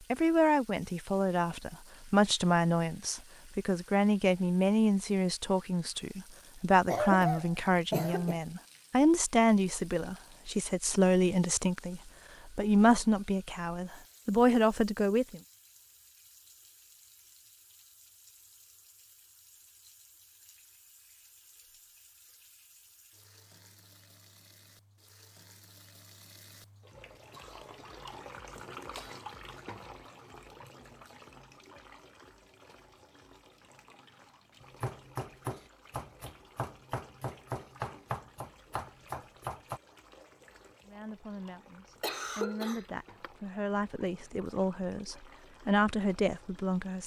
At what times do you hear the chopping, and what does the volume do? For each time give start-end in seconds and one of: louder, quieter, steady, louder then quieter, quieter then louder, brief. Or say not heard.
34.6-39.8 steady.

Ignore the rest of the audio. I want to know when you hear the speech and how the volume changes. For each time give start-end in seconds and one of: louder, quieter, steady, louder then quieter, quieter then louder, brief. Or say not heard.
0.1-15.4 steady
40.9-47.0 louder.